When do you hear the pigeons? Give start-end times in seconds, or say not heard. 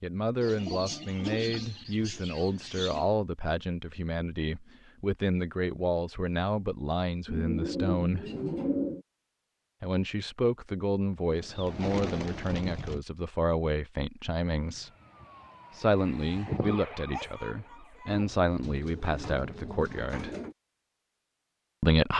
0.4-3.1, 7.2-9.1, 11.3-13.0, 18.1-20.6.